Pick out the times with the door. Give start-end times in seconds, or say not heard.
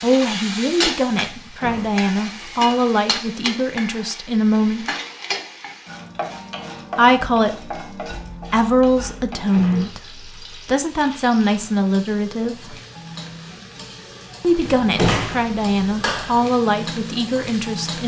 1.2-3.0, 9.4-10.0, 14.7-16.4.